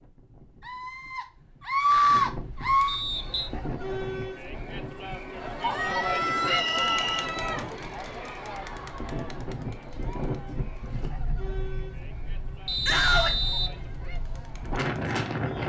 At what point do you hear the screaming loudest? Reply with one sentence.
The volume of the screaming peaks at 2 seconds.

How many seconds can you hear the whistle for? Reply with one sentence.
The whistle can be heard for 3 seconds in total.